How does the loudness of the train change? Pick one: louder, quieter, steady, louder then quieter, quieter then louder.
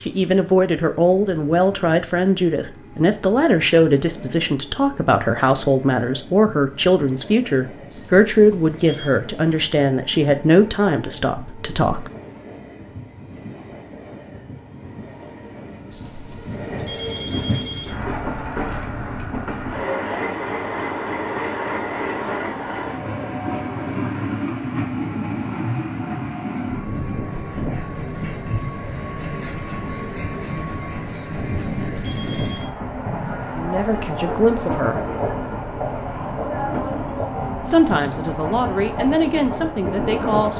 louder.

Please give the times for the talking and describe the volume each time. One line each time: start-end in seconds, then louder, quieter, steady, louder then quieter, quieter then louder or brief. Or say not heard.
0.0-12.1 steady
33.5-35.0 brief
37.6-40.5 brief.